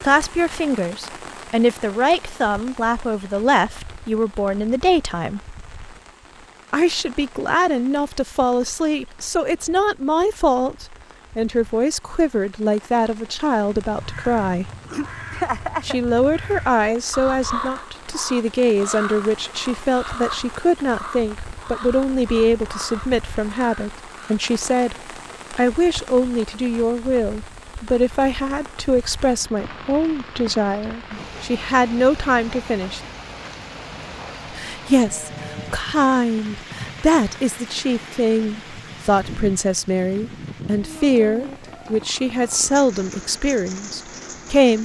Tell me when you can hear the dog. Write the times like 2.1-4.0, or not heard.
not heard.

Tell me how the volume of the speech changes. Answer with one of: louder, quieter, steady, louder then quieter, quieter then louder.
steady.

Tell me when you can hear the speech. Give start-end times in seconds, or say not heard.
0.0-5.4, 6.7-14.7, 15.8-33.0, 34.5-44.8.